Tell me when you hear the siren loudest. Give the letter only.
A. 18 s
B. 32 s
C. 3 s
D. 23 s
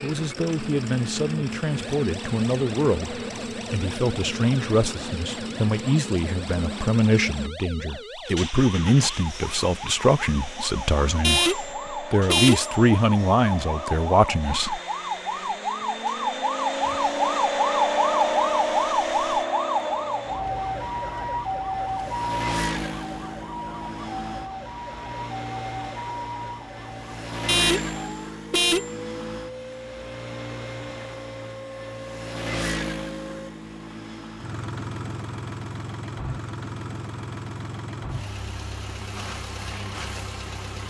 A.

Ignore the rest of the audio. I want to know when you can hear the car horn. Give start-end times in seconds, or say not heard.
11.2-12.8, 27.4-28.9.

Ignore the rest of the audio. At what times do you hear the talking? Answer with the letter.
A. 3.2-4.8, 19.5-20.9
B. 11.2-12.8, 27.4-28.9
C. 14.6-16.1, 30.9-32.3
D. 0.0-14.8
D.